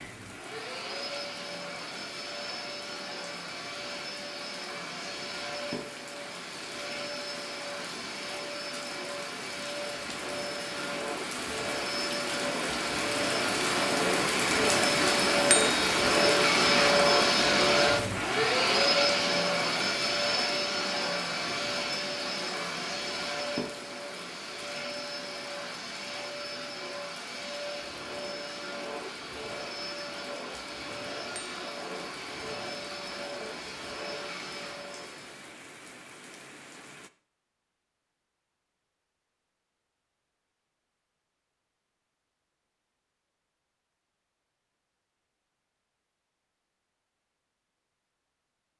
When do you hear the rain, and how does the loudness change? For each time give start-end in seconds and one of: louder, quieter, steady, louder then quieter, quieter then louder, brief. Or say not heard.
0.0-37.1 louder then quieter.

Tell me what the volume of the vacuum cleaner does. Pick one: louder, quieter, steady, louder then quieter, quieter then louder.
louder then quieter.